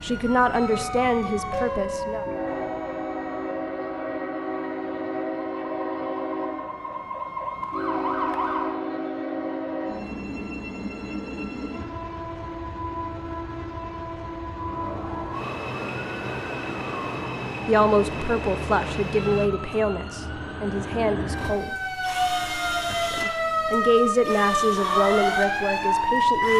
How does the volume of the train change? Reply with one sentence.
The volume of the train stays about the same.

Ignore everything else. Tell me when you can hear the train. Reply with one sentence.
You can hear the train from 0.0 to 19.5 s.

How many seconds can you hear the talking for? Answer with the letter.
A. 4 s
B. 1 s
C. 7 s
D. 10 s
D.